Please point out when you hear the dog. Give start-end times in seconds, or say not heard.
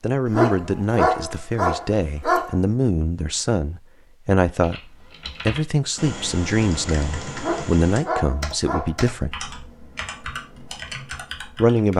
0.2-2.5, 7.3-8.9.